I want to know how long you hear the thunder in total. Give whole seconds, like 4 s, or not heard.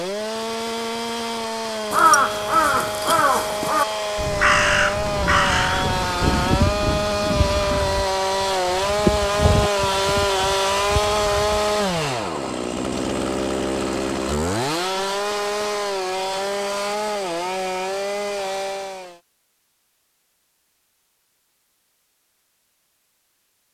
3 s.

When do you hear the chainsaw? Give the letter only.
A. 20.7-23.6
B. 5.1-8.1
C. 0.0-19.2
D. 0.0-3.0
C.